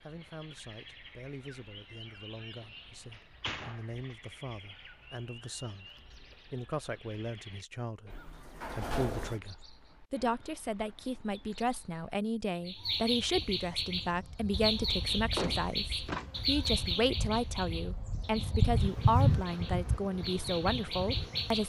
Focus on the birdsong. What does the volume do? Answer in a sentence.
The loudness of the birdsong goes up, then down.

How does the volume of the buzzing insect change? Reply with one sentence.
The loudness of the buzzing insect goes up, then down.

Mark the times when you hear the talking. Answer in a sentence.
You can hear the talking from 0.0 to 21.6 s.